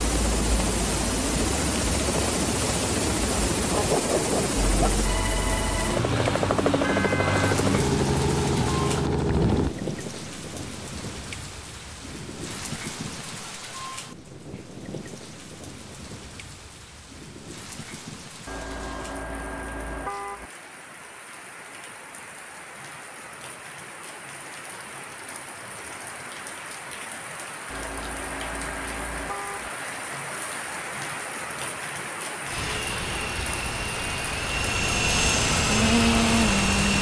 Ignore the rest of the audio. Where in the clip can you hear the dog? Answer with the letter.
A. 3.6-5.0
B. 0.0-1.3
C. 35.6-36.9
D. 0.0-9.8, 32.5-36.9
A.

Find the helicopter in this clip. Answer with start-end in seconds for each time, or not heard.
0.0-9.8, 32.5-36.9.